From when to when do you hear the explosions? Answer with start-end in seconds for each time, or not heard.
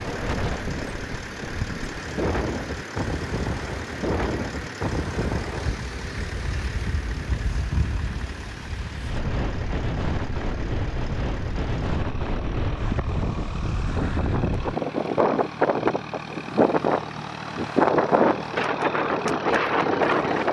not heard.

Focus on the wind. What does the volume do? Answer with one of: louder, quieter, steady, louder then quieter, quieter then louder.
louder.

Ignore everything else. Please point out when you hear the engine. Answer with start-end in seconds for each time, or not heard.
0.0-20.4.